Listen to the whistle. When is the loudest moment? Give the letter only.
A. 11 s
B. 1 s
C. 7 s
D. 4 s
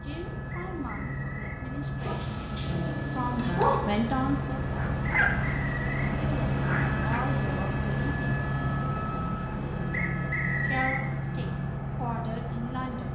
A.